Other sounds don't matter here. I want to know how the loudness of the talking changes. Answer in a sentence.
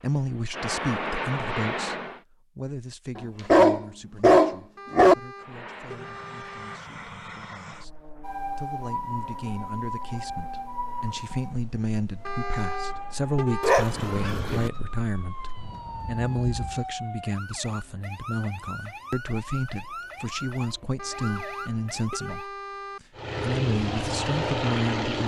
The volume of the talking goes down, then up.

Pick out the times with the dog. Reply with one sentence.
You can hear the dog from 3.1 to 5.2 s and from 13.6 to 14.7 s.